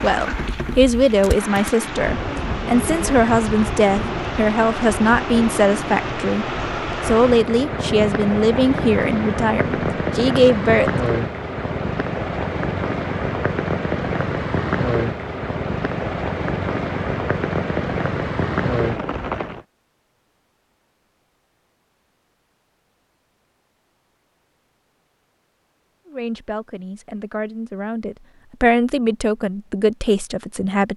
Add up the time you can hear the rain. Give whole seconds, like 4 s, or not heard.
20 s.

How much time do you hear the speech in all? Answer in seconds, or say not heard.
16 s.